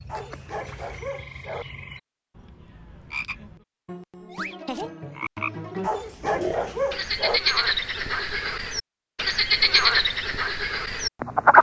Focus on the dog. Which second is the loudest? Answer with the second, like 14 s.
7 s.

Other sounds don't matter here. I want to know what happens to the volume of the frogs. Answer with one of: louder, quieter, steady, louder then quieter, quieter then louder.
louder.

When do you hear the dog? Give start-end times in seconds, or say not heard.
0.1-1.6, 5.8-7.4.